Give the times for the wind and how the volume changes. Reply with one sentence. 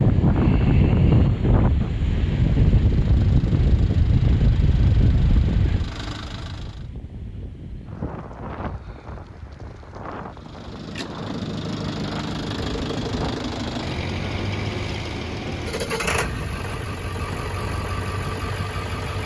The wind can be heard from 0.0 to 19.2 s, getting quieter.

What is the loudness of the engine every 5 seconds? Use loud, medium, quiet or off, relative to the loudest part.
quiet, medium, loud, loud.